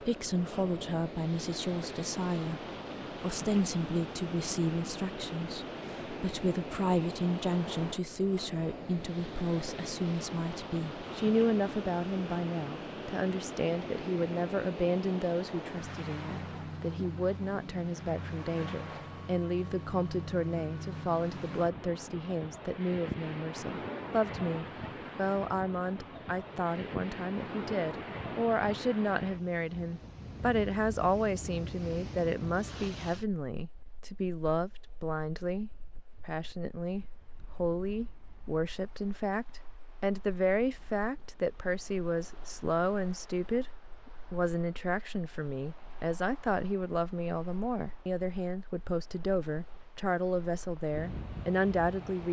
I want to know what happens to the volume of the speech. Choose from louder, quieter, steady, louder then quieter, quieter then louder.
steady.